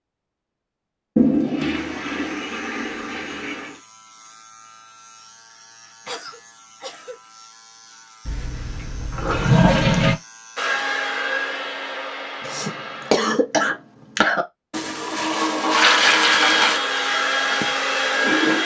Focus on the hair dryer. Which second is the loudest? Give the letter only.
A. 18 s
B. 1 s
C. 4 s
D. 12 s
A.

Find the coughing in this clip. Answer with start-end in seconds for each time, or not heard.
6.0-7.2, 12.4-14.4.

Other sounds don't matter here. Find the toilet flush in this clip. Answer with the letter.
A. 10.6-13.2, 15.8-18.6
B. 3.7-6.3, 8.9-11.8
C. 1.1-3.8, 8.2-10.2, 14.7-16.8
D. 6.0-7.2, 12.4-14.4
C.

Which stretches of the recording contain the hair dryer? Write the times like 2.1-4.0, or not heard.
10.6-13.2, 15.8-18.6.